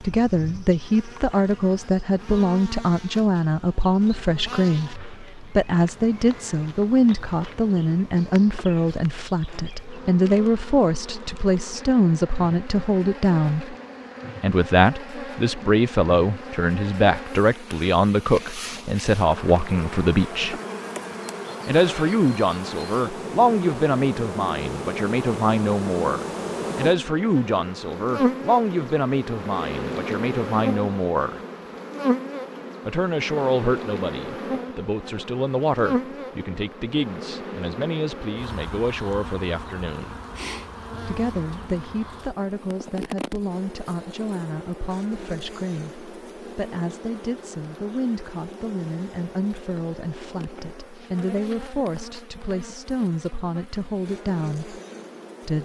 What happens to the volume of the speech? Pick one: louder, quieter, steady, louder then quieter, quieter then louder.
quieter.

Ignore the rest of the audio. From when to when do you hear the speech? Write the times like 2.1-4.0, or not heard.
0.0-13.8, 14.4-20.6, 21.6-31.4, 32.9-40.2, 41.0-54.8.